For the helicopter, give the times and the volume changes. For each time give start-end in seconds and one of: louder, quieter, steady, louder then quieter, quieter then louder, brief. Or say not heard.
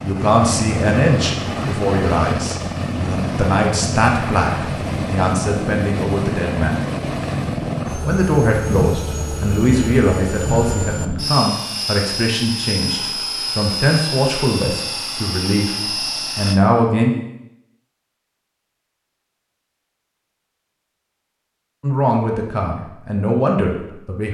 0.0-16.6 steady.